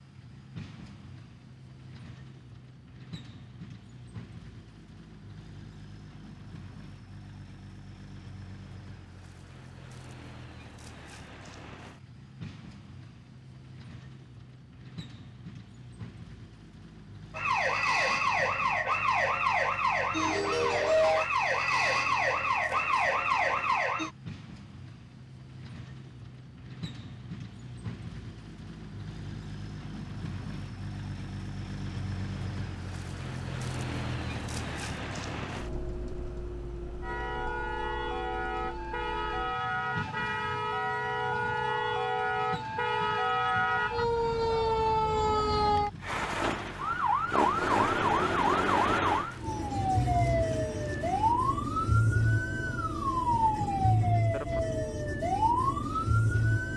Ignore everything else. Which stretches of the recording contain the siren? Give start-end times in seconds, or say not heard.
17.4-24.1, 37.0-56.7.